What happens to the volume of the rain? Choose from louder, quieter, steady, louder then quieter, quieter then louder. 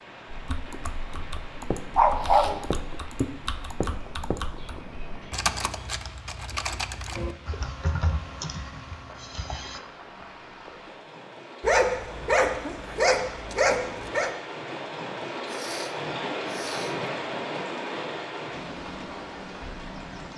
louder.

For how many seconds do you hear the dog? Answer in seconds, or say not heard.
3 s.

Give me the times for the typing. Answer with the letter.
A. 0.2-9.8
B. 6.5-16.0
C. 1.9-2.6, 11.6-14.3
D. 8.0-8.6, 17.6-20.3
A.